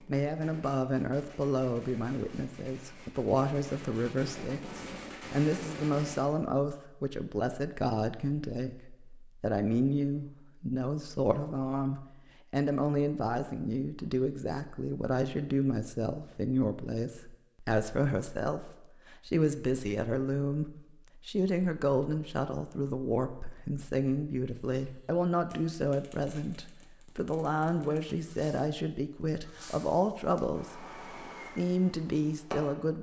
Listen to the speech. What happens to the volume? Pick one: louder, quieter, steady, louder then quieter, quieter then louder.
steady.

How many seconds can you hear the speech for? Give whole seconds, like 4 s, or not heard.
33 s.